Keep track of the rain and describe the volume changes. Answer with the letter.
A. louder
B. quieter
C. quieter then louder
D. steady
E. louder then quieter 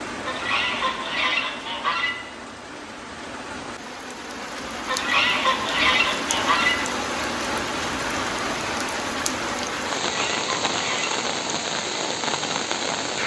A.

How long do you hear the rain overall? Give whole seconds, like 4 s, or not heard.
13 s.